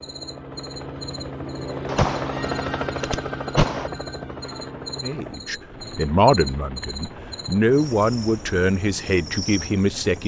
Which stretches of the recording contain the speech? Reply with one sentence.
The speech can be heard from 5.0 to 10.2 s.